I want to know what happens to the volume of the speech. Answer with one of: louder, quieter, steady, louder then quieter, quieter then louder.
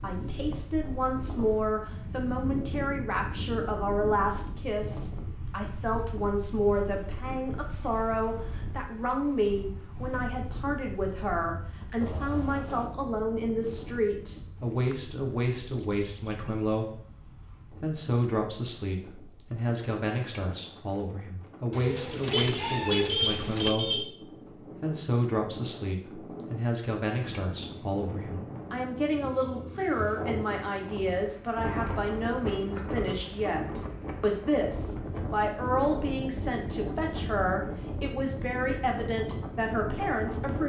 steady.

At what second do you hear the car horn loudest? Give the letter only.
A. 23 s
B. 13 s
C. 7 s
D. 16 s
A.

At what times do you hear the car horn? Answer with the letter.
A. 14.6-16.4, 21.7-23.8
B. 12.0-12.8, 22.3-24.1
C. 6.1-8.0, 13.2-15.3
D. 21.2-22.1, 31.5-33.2
B.